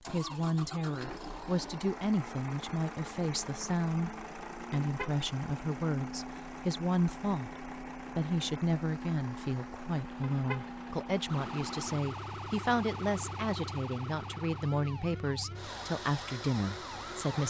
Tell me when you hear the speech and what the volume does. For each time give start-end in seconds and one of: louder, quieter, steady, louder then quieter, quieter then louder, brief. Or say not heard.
0.1-17.4 steady.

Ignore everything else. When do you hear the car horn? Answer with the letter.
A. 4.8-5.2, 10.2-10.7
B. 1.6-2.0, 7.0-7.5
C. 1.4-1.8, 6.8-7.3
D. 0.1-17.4
A.